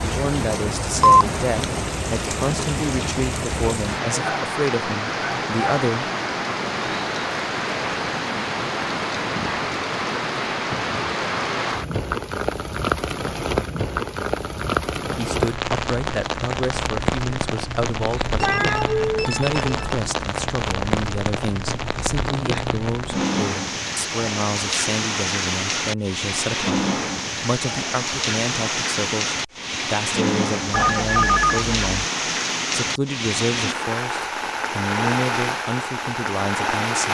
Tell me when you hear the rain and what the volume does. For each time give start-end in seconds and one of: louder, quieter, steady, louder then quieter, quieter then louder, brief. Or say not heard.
0.0-37.1 steady.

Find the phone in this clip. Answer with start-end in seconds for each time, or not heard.
0.9-1.6, 18.4-19.9, 30.7-31.8.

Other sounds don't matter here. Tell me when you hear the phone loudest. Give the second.
1 s.